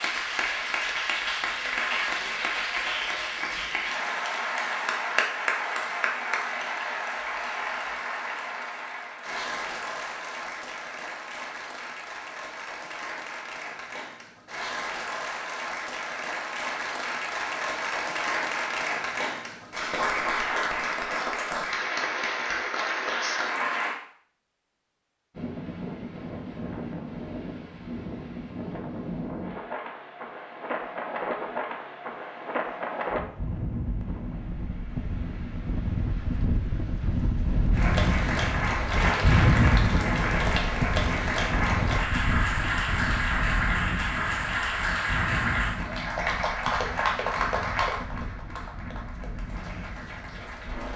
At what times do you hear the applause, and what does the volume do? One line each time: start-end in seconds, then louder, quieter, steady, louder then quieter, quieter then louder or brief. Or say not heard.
0.0-24.0 quieter then louder
37.7-50.9 quieter.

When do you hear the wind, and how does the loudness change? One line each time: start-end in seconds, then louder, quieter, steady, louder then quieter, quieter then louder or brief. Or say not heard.
25.3-50.9 louder then quieter.